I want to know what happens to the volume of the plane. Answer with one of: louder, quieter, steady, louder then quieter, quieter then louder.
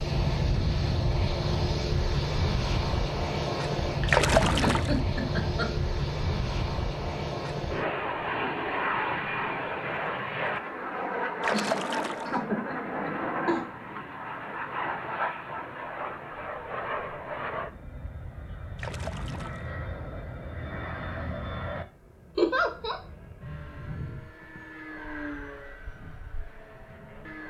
quieter.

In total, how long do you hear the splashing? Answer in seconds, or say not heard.
3 s.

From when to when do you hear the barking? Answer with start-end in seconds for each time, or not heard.
not heard.